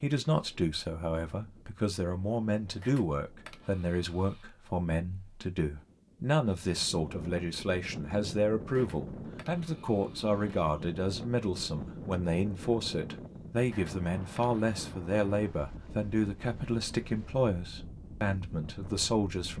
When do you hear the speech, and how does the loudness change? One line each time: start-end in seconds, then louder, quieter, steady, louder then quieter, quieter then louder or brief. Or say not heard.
0.0-19.5 steady.